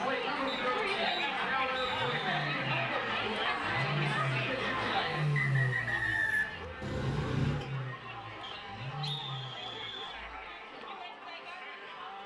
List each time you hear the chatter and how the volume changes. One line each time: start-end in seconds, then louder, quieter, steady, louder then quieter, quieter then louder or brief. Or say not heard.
0.0-12.2 quieter.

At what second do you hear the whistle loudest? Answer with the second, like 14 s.
6 s.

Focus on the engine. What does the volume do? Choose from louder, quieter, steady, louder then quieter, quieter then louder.
louder then quieter.